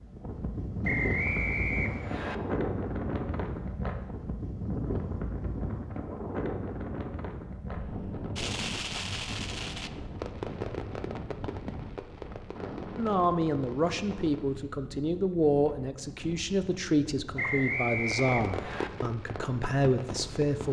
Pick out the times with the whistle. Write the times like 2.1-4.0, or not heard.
0.8-2.4, 17.4-18.9.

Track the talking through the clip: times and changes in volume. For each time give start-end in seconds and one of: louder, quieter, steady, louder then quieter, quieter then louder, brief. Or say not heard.
12.9-20.6 steady.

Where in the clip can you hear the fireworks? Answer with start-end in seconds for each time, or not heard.
8.3-14.4, 18.0-20.6.